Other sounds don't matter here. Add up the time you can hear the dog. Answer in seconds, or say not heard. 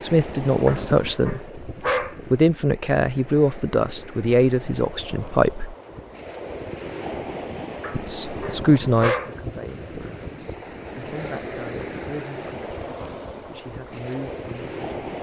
3 s.